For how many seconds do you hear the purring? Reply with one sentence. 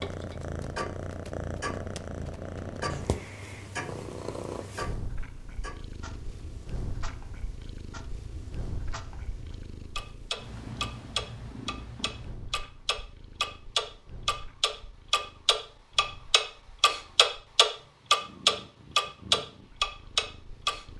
The purring can be heard for 21 seconds in total.